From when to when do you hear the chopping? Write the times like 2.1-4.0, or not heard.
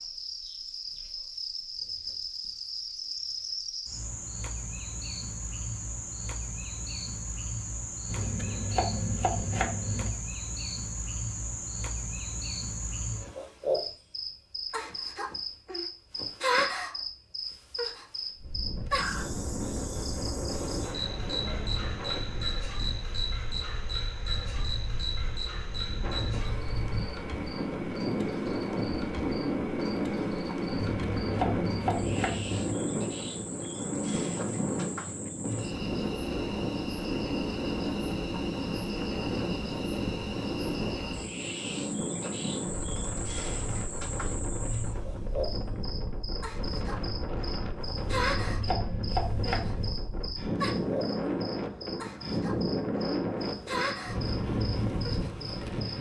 8.1-10.1, 30.7-32.8, 48.0-49.9.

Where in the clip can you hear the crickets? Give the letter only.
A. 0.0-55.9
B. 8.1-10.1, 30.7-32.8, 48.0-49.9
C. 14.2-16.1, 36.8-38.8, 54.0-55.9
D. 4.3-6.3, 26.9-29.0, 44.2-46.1
A.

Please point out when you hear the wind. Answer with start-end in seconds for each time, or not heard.
18.4-55.9.